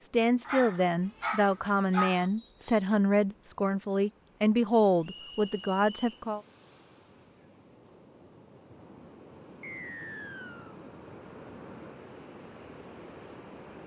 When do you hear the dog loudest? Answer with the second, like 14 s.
2 s.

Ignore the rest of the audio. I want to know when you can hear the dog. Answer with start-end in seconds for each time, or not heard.
0.5-2.3.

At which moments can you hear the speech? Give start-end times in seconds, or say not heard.
0.0-6.4.